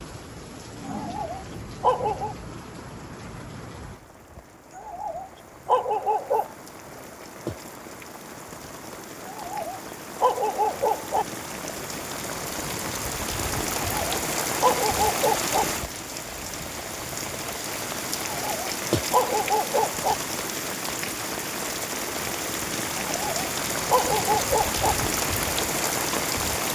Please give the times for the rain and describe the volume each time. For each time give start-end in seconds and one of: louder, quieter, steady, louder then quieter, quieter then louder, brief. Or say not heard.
0.0-26.6 louder.